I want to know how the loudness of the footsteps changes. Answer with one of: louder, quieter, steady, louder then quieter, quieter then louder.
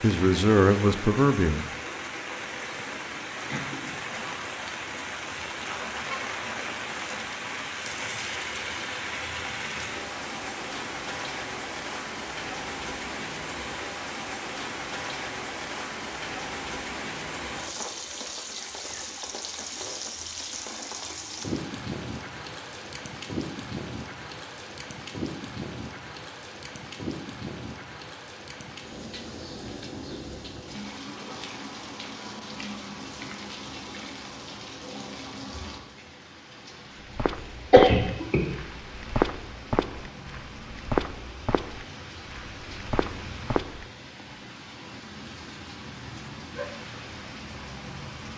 quieter.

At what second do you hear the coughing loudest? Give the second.
38 s.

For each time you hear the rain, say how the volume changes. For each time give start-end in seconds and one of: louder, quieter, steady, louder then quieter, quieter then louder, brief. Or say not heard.
0.0-48.3 quieter.